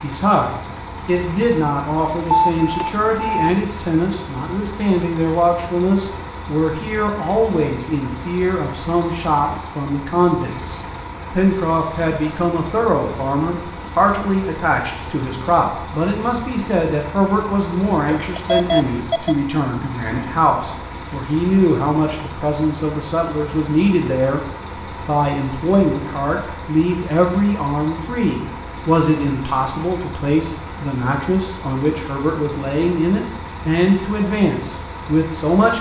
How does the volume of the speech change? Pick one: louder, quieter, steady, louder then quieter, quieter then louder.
steady.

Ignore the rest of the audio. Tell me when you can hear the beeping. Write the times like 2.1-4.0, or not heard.
2.3-3.5, 18.1-19.4.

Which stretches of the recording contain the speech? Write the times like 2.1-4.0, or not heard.
0.0-24.4, 25.1-35.7.